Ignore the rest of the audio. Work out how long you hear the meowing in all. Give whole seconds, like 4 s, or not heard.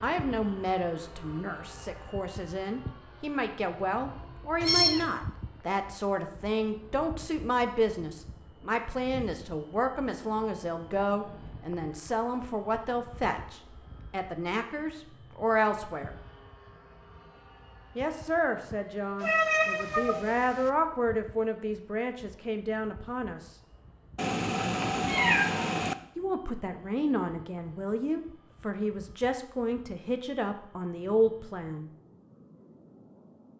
4 s.